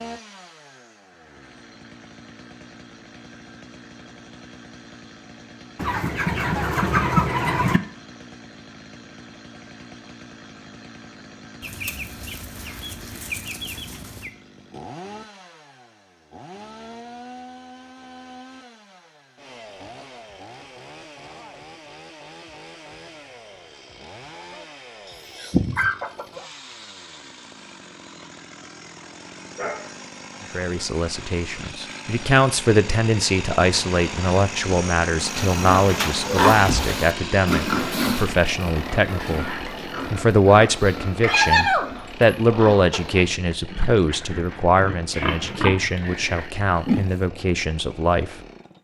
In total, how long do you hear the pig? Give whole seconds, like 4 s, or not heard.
12 s.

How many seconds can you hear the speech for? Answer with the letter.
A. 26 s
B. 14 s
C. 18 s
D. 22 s
C.